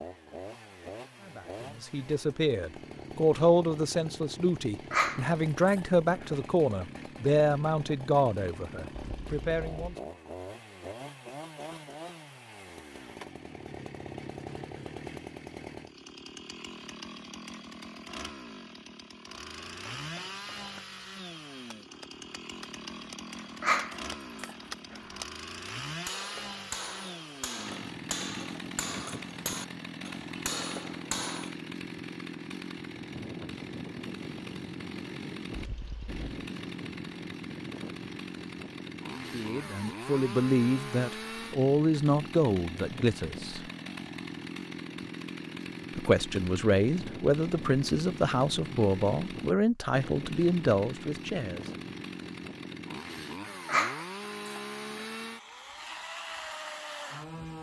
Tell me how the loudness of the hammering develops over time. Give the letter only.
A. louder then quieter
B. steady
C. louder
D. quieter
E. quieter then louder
C.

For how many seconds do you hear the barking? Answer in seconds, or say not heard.
4 s.